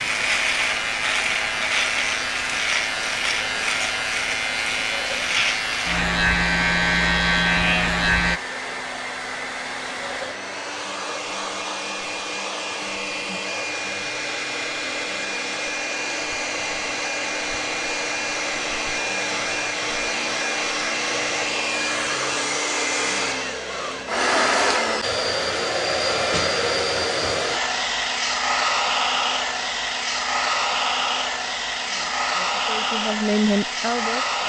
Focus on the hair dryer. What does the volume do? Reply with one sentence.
The loudness of the hair dryer goes up.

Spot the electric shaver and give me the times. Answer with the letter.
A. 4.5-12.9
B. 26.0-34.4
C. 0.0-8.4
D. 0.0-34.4
C.